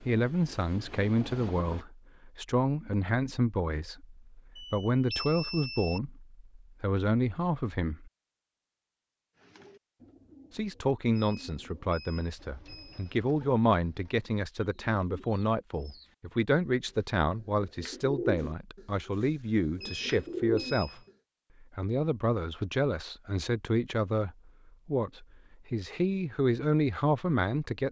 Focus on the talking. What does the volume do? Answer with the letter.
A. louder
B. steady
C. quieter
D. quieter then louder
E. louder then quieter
B.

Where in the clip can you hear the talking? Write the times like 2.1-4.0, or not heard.
0.0-8.1, 10.5-21.0, 21.6-27.8.